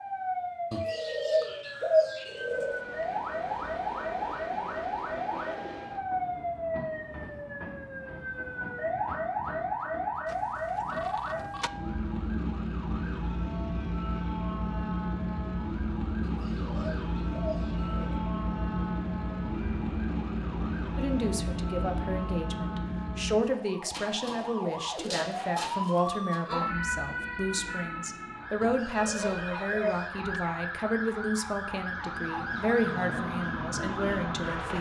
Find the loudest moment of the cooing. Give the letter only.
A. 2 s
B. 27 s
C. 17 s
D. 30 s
A.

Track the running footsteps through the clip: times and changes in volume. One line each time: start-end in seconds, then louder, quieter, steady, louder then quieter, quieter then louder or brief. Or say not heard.
not heard.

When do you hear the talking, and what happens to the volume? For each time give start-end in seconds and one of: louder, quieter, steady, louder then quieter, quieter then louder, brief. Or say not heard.
20.9-34.7 steady.